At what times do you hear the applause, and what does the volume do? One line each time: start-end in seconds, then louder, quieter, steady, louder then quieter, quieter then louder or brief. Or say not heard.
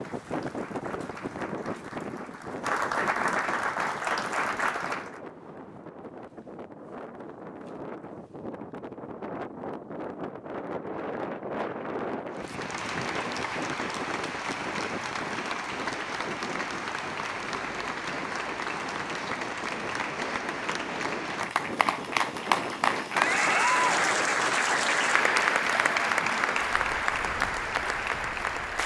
0.0-5.2 louder
12.3-28.8 louder.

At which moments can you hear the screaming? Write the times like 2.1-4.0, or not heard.
23.1-23.9.